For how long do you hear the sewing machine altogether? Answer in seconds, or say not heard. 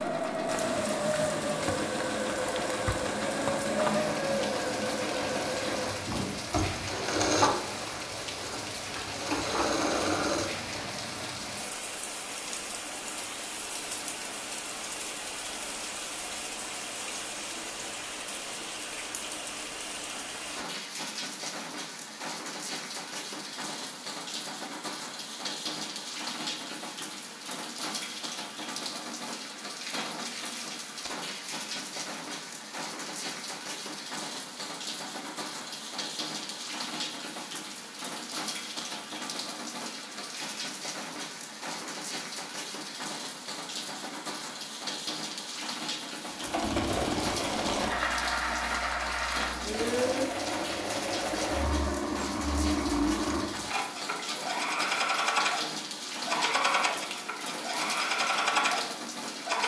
24 s.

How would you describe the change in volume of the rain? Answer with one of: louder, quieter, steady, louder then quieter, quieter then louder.
steady.